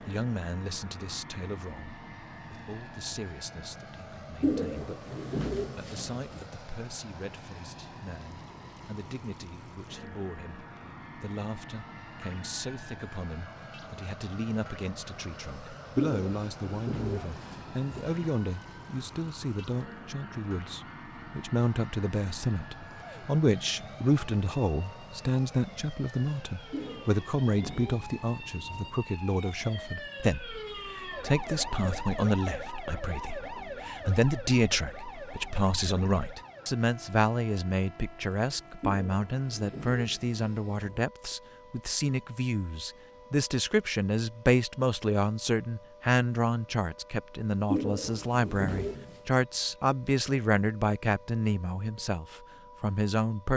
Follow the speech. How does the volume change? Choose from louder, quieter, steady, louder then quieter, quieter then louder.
louder.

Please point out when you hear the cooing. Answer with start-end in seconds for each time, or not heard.
4.4-6.5, 15.9-18.4, 26.7-29.1, 38.8-41.0, 47.7-49.2.